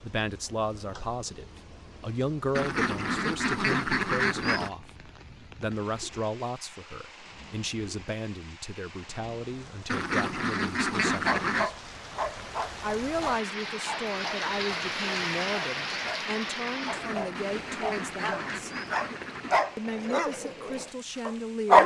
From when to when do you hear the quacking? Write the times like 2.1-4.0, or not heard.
2.5-4.7, 9.8-11.7, 16.8-19.6.